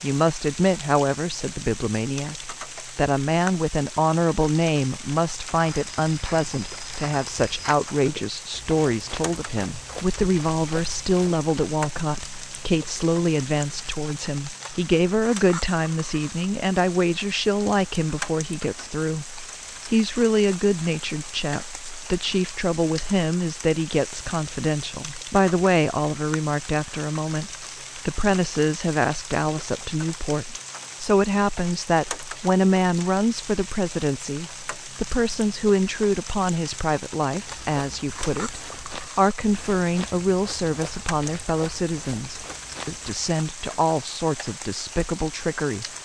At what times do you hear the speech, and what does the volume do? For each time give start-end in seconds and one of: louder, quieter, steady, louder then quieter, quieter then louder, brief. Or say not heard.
0.0-45.9 steady.